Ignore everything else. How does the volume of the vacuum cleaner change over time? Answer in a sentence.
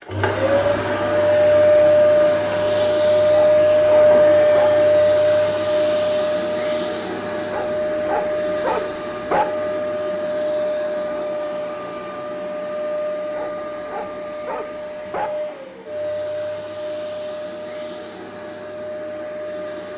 The volume of the vacuum cleaner goes down.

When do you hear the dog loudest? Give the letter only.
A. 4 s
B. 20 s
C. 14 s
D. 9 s
D.